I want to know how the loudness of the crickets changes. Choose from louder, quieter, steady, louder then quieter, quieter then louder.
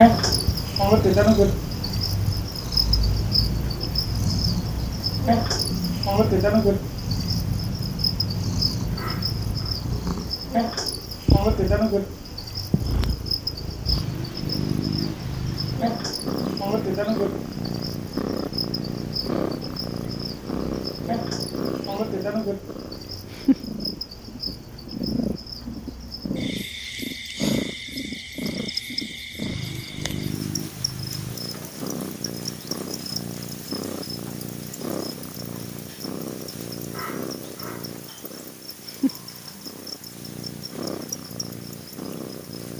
quieter.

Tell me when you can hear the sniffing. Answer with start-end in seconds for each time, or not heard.
8.9-9.8, 36.9-37.9.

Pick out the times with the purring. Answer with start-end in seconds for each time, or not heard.
0.0-42.7.